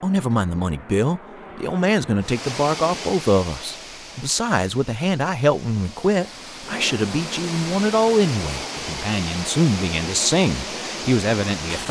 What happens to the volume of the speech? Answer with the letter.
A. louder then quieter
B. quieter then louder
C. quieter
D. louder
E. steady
E.